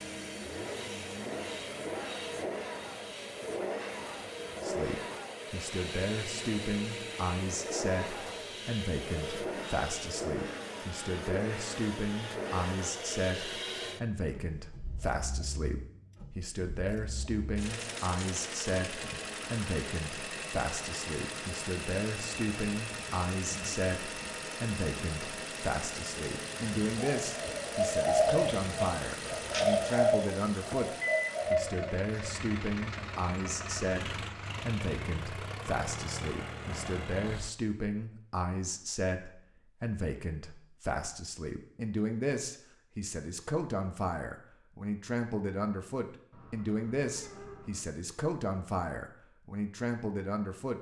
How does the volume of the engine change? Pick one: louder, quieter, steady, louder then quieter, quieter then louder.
steady.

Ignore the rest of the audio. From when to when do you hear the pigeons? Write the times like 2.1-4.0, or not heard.
26.9-32.3.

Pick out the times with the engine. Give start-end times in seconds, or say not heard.
0.0-37.5.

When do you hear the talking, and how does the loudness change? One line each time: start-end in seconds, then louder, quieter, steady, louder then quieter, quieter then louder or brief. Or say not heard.
4.6-50.7 steady.